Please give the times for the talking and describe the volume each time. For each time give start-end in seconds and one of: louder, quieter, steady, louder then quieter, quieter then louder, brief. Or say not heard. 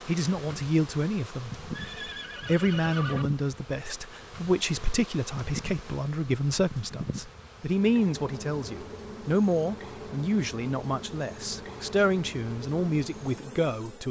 0.1-1.5 brief
2.4-14.0 steady.